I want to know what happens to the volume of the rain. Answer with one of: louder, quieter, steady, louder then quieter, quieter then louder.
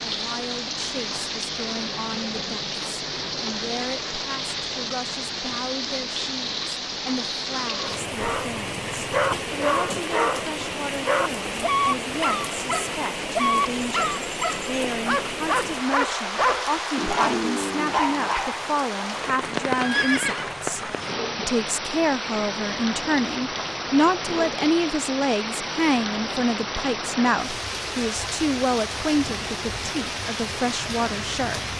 steady.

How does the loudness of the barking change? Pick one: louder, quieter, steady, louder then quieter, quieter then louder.
steady.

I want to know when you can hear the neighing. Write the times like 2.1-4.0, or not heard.
19.7-20.6.